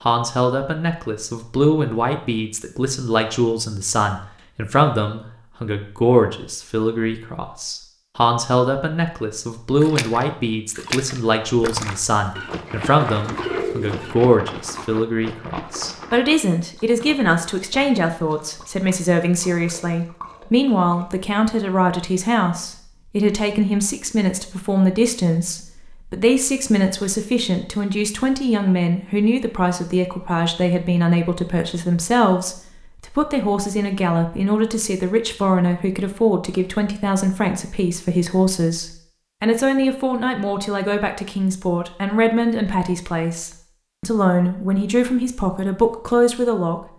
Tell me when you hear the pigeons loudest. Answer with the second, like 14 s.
14 s.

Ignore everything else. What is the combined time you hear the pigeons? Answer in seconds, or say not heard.
2 s.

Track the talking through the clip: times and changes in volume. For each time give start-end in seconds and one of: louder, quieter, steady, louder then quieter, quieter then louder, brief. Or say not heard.
0.0-46.8 steady.